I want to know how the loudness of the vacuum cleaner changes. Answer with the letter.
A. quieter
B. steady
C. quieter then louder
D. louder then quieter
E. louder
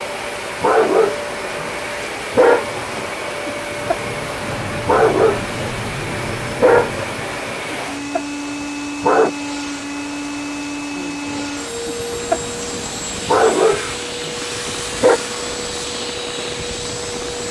B.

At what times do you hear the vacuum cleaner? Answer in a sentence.
You can hear the vacuum cleaner from 0.0 to 17.4 s.